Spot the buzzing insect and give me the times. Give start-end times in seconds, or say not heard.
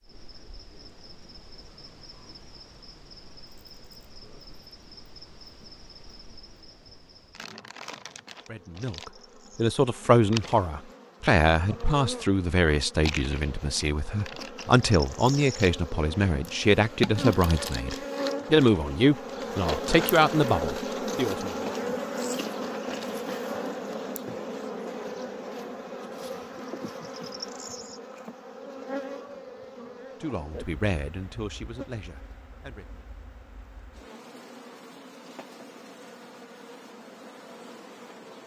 0.0-38.4.